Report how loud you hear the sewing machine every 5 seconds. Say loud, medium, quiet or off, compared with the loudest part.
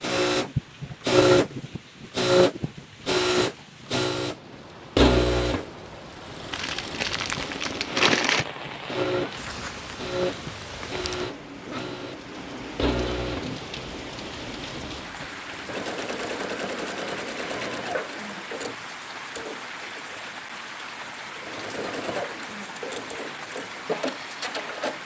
loud, medium, medium, quiet, quiet.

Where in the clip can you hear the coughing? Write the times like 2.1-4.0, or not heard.
11.4-11.9.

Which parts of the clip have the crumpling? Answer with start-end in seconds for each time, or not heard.
6.5-8.4.